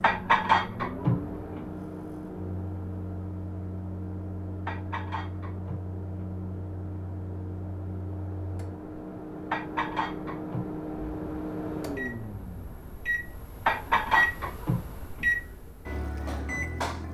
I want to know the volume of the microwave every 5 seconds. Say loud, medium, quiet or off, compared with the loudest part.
medium, medium, loud, loud.